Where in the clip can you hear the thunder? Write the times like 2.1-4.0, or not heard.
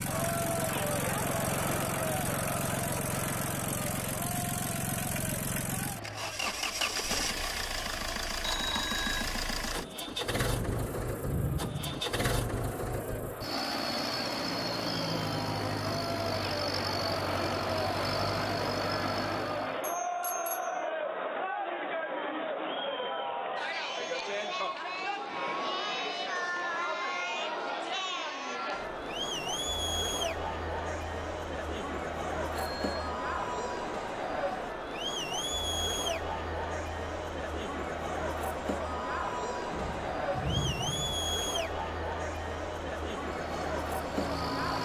10.6-12.0, 39.7-41.1.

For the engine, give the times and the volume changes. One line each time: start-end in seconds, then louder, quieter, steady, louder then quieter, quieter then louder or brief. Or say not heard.
0.0-19.9 steady
43.3-44.7 brief.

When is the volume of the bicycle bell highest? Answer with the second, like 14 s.
9 s.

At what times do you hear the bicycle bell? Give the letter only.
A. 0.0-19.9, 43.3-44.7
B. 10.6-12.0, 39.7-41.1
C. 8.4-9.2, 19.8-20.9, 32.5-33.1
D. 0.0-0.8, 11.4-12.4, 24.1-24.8
C.